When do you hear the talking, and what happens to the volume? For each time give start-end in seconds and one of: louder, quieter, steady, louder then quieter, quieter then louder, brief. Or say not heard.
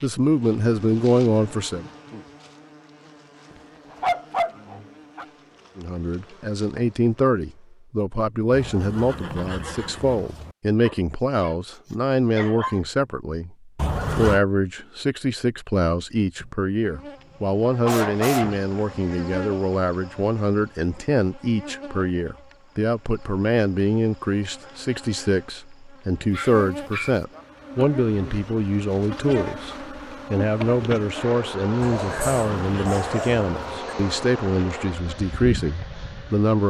0.0-1.9 brief
5.8-36.6 steady.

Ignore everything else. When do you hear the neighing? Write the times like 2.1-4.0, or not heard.
8.5-10.6, 13.8-14.4, 32.0-33.8.